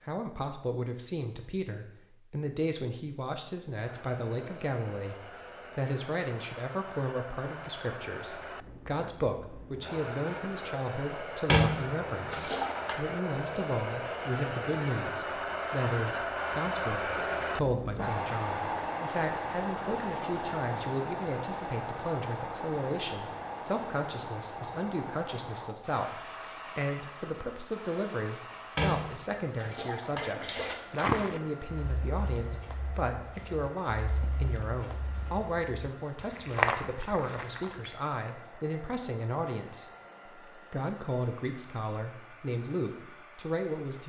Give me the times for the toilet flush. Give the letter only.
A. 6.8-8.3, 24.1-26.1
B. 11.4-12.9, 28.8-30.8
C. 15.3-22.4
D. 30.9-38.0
B.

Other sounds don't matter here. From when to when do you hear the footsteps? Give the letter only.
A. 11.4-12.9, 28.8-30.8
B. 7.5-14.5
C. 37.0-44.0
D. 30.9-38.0
D.